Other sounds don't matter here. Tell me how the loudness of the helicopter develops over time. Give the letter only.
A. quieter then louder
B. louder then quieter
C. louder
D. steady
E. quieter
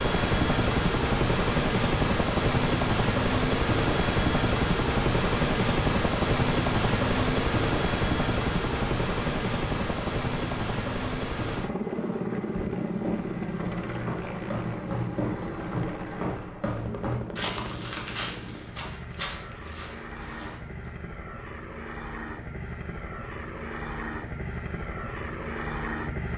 E.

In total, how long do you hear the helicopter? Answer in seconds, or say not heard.
26 s.